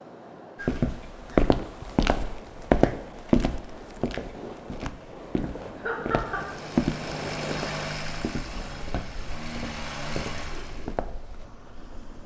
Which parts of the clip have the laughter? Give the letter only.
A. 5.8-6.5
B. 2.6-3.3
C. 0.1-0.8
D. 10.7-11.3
A.